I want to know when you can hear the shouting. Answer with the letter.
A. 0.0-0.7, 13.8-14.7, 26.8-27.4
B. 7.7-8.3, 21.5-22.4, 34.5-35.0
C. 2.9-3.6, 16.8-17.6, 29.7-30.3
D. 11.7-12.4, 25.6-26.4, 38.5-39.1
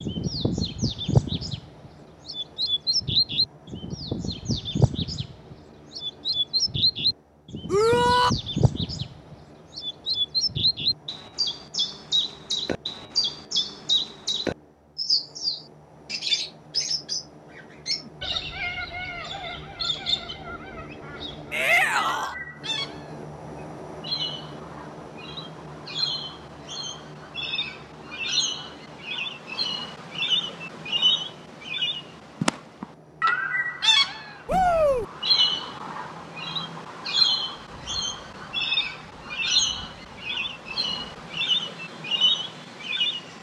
B.